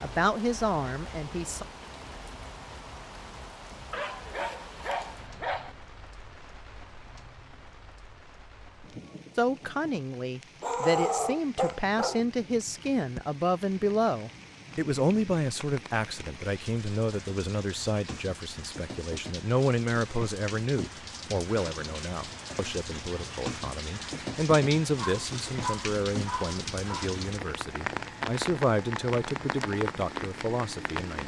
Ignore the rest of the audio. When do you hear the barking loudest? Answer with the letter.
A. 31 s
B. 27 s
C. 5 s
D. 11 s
D.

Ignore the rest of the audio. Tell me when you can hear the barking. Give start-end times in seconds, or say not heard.
3.9-5.8, 10.6-12.2, 24.9-27.1.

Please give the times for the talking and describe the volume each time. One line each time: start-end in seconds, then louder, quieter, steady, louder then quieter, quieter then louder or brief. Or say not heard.
0.0-1.6 brief
9.3-31.2 steady.